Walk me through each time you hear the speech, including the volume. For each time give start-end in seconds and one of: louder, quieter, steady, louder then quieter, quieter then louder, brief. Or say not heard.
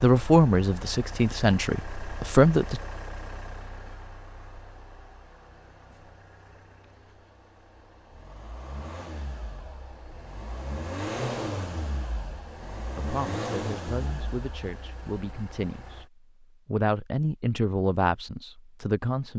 0.0-2.8 brief
12.9-19.3 louder.